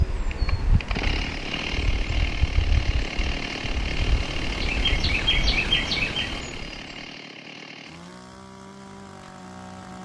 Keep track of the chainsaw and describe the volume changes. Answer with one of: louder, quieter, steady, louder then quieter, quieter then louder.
quieter.